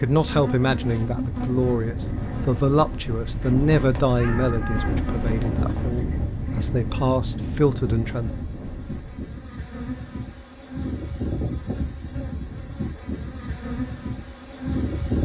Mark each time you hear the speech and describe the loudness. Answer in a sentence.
You can hear the speech from 0.0 to 8.3 s, getting quieter then louder.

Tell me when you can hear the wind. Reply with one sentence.
You can hear the wind from 0.1 to 9.3 s.